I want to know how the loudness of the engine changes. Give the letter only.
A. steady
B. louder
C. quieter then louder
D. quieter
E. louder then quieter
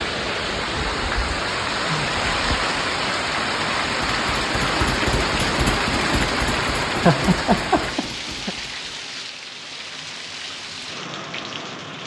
D.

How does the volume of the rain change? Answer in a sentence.
The volume of the rain goes down.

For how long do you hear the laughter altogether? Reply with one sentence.
You can hear the laughter for 2 seconds altogether.